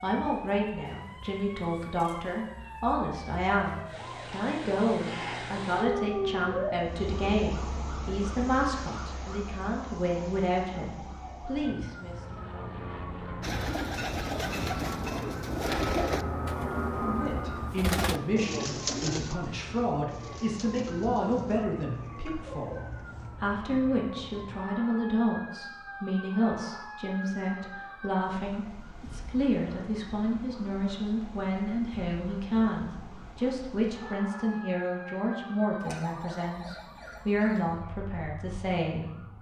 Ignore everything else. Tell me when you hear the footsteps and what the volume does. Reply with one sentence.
You can't hear the footsteps here.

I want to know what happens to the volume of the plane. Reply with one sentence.
The loudness of the plane goes up.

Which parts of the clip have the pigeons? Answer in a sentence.
The pigeons can be heard from 13.4 to 23.3 s.